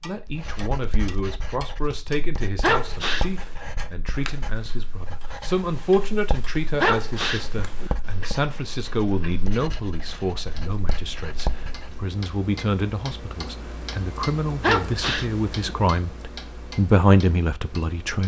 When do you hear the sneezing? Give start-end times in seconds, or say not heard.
2.6-3.3, 6.8-7.9, 14.6-15.8.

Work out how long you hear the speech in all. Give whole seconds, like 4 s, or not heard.
18 s.